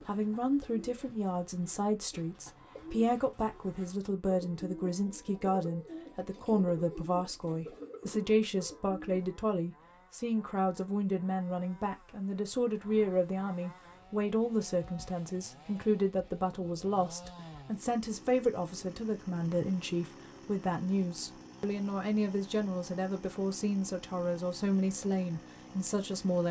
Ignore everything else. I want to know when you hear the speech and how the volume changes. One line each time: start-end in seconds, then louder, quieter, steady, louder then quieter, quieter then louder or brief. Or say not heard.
0.1-26.4 steady.